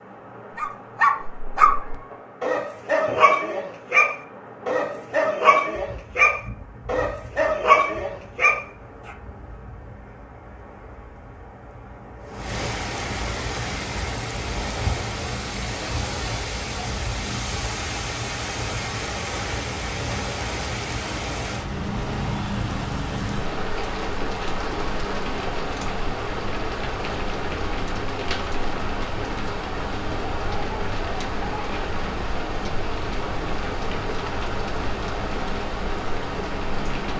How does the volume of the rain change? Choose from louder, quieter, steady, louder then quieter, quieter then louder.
louder.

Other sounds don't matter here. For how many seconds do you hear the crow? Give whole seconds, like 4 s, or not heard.
not heard.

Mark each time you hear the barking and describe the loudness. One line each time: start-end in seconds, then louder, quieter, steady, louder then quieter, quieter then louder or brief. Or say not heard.
0.6-8.7 steady.